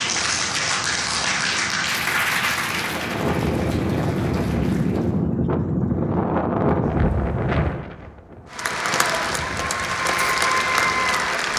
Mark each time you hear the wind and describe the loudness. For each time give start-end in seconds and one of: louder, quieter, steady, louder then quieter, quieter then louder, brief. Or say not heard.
0.0-11.3 louder then quieter.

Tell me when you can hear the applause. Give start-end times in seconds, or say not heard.
0.0-5.2, 8.5-11.5.